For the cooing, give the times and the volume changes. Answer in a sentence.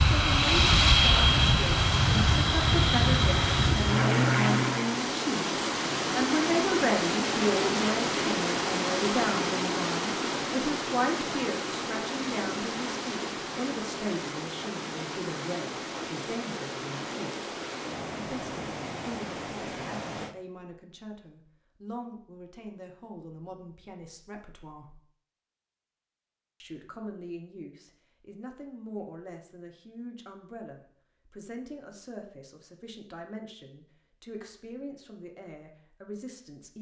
The cooing can't be heard in this clip.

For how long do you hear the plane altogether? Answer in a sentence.
You can hear the plane for 5 seconds altogether.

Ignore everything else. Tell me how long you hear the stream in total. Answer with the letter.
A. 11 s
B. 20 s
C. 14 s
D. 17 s
B.